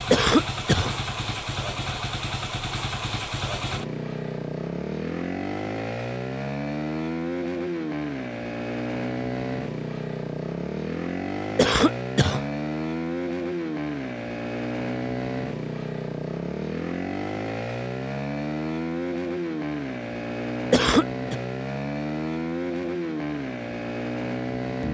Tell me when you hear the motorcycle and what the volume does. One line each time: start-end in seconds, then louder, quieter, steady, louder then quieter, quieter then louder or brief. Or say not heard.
0.0-24.8 steady.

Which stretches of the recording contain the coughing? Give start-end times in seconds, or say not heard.
0.1-0.9, 11.6-12.4, 20.7-21.4.